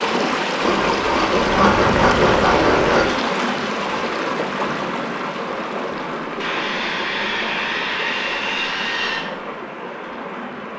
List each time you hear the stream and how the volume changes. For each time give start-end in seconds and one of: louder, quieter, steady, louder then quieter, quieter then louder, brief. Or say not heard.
0.0-10.7 quieter.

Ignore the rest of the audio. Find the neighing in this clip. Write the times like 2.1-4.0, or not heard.
not heard.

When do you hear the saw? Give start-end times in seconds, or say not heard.
0.6-3.1, 6.4-9.3.